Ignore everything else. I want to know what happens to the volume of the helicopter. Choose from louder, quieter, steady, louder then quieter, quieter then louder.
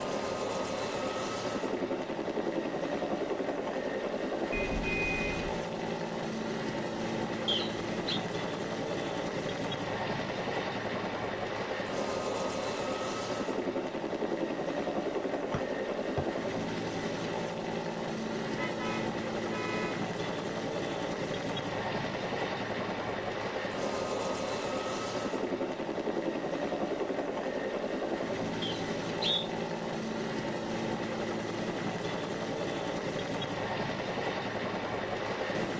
steady.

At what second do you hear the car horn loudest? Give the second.
5 s.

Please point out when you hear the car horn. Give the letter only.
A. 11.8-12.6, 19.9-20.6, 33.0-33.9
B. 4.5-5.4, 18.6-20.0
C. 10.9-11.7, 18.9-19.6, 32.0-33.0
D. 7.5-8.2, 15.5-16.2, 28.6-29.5
B.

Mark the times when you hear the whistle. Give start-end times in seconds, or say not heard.
7.5-8.2, 15.5-16.2, 28.6-29.5.